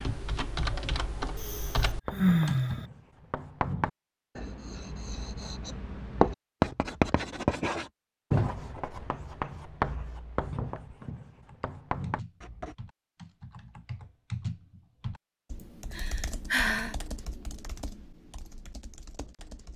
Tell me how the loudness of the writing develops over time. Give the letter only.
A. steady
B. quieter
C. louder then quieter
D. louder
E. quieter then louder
C.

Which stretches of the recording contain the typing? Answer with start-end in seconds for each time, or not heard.
0.0-2.8, 11.3-19.7.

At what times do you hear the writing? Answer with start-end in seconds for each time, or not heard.
2.0-12.8.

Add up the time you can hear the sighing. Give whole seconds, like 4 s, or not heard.
3 s.